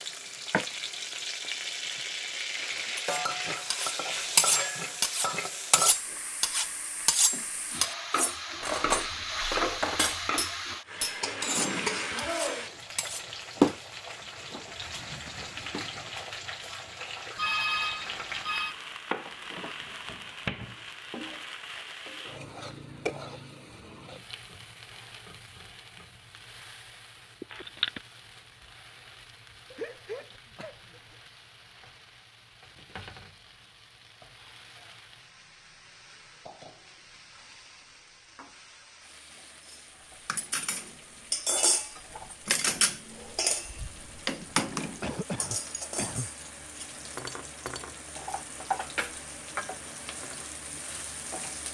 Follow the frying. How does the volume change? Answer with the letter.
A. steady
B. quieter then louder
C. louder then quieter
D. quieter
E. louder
B.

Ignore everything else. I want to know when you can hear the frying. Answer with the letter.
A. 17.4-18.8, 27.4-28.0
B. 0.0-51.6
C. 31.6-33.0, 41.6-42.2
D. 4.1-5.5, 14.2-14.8
B.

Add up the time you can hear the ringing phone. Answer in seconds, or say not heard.
2 s.